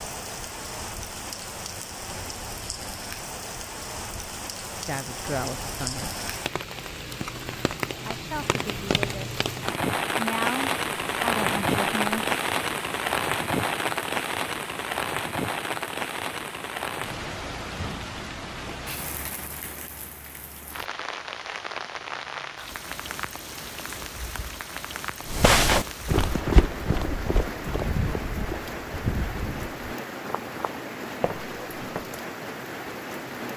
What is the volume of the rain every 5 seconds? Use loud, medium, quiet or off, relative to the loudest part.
medium, medium, loud, medium, medium, medium, medium.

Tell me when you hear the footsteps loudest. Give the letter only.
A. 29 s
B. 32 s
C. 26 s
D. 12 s
C.